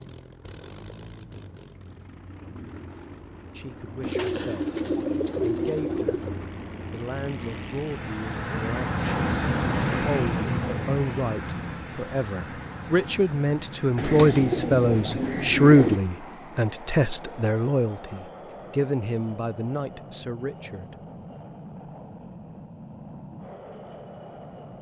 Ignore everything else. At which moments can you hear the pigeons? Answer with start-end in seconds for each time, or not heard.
4.0-6.4, 13.9-16.0.